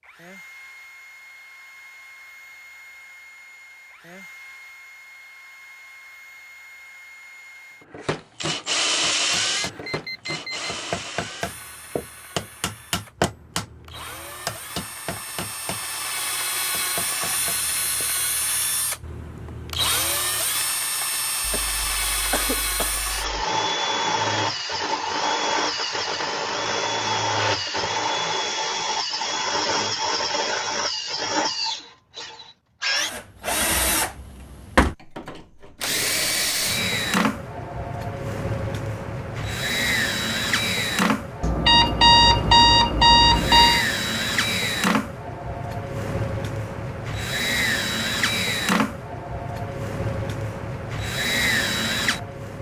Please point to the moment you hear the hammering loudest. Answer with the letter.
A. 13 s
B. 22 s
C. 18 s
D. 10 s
A.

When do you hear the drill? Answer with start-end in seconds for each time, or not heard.
0.0-52.5.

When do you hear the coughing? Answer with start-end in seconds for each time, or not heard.
21.4-23.4.